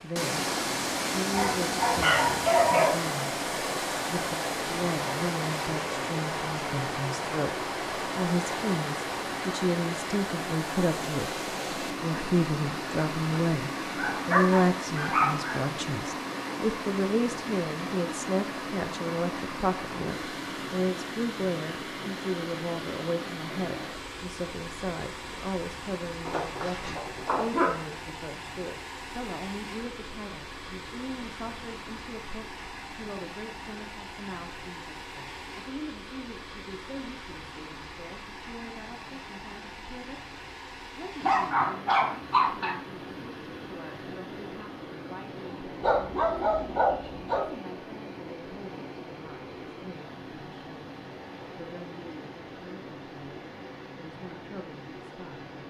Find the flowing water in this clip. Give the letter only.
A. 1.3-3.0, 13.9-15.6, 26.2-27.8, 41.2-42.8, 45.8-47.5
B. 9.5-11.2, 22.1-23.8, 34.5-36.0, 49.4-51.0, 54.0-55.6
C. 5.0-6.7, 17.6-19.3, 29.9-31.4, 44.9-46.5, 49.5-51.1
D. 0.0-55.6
D.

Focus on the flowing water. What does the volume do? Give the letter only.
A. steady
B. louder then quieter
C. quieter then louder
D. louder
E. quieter
E.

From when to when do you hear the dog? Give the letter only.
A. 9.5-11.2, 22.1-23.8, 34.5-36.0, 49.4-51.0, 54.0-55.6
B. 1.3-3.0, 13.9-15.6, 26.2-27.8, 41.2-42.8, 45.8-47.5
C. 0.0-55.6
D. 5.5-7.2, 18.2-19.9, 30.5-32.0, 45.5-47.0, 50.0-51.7
B.